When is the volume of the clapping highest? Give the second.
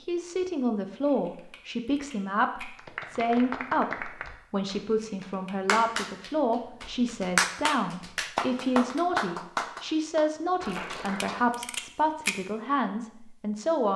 8 s.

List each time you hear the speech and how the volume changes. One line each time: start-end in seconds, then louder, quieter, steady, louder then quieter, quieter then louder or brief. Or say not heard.
0.0-13.9 steady.